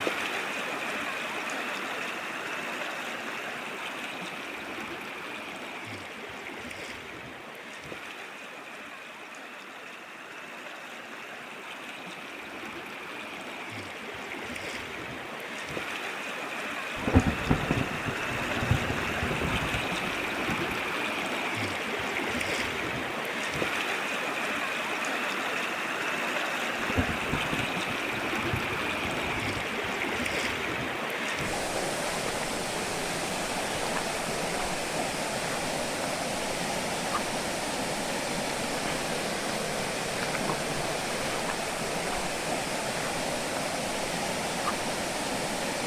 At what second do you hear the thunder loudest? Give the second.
17 s.